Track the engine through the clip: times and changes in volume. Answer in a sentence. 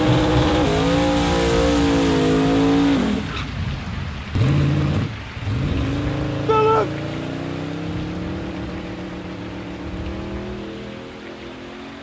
You can hear the engine from 0.0 to 11.9 s, getting quieter.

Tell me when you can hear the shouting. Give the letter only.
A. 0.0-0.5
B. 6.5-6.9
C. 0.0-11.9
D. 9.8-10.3
B.